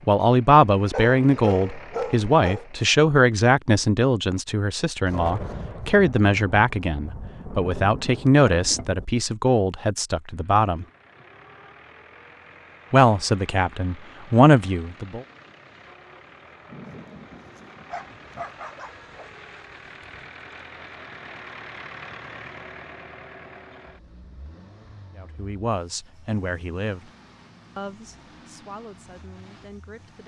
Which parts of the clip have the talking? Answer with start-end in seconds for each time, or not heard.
0.1-10.8, 12.9-15.2, 25.1-27.1, 27.8-30.2.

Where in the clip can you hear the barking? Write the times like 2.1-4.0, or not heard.
0.9-2.6, 17.9-20.2.